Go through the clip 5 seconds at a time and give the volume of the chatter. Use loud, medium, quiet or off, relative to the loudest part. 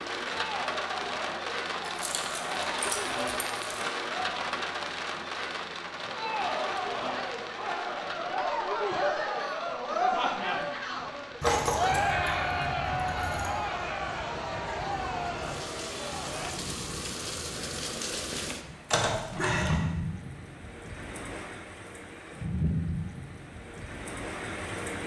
medium, loud, loud, medium, off.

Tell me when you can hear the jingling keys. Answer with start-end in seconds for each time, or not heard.
1.9-3.9, 11.4-13.6, 18.9-19.9.